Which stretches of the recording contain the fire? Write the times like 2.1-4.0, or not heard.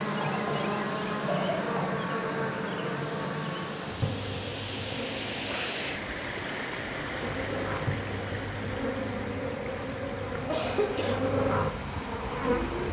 not heard.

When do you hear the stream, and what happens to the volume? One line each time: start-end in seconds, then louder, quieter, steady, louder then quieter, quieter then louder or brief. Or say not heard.
0.0-12.8 louder then quieter.